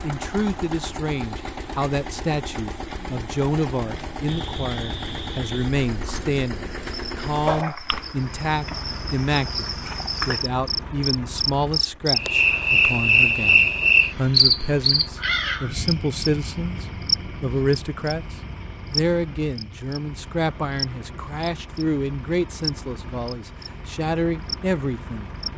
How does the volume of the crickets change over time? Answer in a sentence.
The volume of the crickets goes up, then down.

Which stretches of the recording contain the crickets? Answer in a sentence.
You can hear the crickets from 4.2 to 25.5 s.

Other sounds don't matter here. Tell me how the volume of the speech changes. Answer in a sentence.
The volume of the speech stays about the same.